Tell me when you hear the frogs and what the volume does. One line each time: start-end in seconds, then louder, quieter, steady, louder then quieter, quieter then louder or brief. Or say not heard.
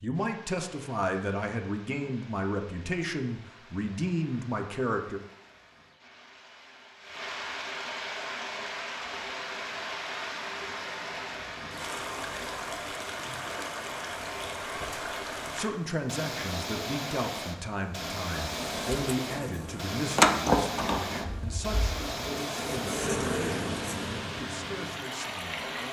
not heard.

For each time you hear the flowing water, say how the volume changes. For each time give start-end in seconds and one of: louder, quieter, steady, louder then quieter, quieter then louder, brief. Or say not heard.
0.0-25.8 louder.